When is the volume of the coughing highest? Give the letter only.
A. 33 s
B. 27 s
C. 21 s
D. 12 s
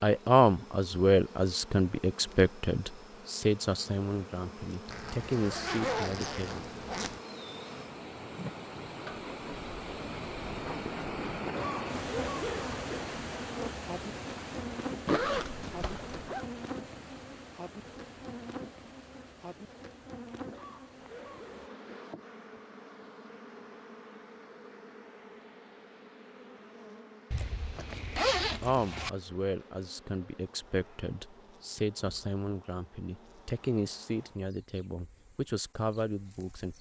D.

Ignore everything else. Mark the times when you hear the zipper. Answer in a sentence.
The zipper can be heard from 4.8 to 7.2 s, from 15.1 to 16.4 s and from 27.3 to 29.1 s.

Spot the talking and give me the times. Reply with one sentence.
The talking can be heard from 0.0 to 6.7 s and from 28.6 to 36.7 s.